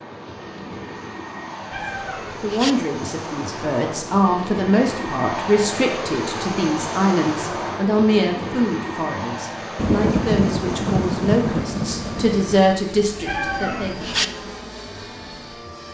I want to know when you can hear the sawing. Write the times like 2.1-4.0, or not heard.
not heard.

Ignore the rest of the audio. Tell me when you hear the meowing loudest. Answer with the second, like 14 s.
14 s.